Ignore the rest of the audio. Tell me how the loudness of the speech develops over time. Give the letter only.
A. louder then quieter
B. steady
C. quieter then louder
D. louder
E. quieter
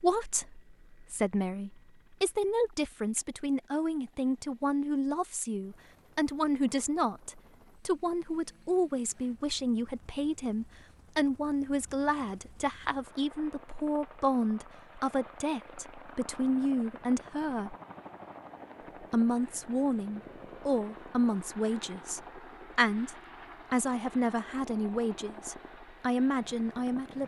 B.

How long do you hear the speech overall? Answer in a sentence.
You can hear the speech for 26 seconds altogether.